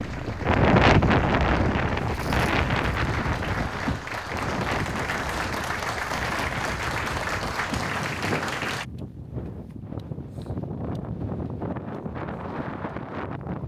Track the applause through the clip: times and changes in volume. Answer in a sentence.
You can hear the applause from 0.0 to 8.8 s, getting louder.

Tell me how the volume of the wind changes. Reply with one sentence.
The loudness of the wind goes down.